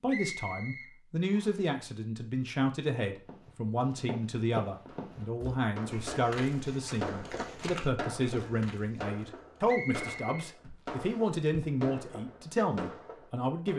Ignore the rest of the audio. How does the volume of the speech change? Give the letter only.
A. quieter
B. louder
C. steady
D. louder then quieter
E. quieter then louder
C.